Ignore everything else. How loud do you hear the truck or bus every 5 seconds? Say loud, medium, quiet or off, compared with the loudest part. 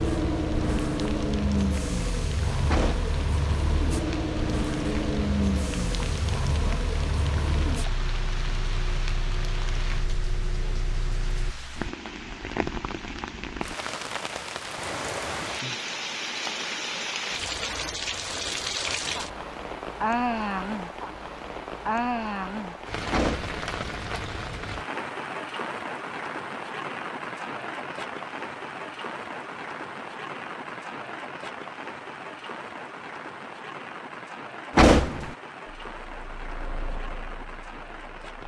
loud, loud, medium, off, off, off, off, quiet.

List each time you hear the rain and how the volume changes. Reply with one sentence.
You can hear the rain from 0.0 to 38.4 s, getting louder then quieter.